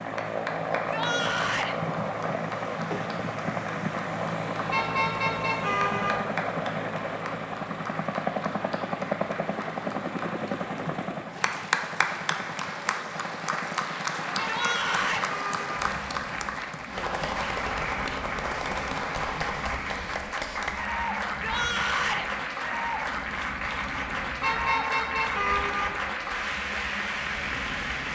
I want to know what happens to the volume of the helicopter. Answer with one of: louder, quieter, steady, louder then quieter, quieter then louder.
quieter.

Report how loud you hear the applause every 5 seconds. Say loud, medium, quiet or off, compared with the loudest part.
medium, medium, loud, loud, loud, loud.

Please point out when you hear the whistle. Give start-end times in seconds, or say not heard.
not heard.